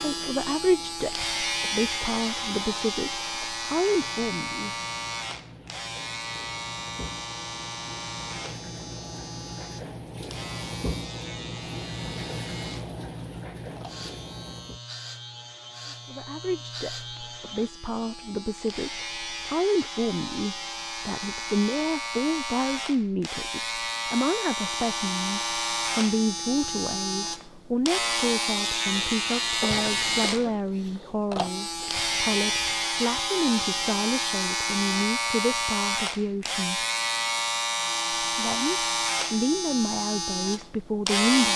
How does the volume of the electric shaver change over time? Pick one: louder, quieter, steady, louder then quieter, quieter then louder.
quieter then louder.